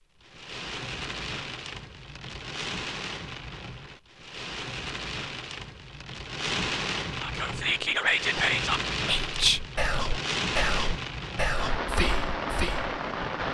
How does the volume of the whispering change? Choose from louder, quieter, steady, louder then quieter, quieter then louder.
quieter.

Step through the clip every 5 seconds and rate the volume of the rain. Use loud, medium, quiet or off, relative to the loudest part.
medium, loud, loud.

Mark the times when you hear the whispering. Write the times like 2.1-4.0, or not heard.
7.2-12.9.